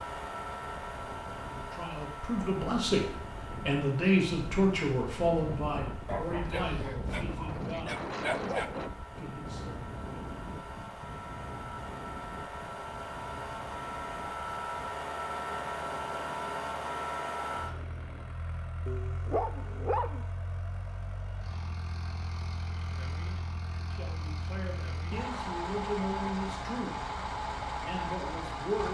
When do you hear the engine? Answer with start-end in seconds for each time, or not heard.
0.0-28.8.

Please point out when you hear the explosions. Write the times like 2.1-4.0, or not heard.
not heard.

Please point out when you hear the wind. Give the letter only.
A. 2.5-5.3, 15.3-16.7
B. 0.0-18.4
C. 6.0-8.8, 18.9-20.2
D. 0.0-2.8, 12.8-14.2
B.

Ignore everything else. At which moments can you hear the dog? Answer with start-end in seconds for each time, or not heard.
6.0-8.8, 18.9-20.2.